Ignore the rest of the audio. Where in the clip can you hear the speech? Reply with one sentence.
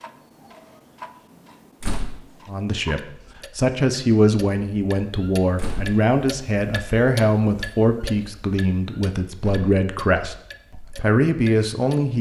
The speech can be heard from 2.5 to 12.1 s.